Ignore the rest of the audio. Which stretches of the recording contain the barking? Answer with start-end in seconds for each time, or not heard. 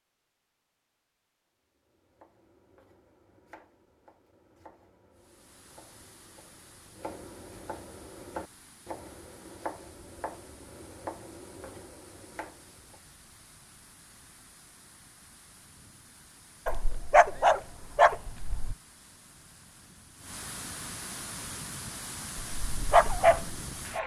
16.6-18.8, 22.4-24.0.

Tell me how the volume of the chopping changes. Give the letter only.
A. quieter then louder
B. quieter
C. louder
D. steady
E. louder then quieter
C.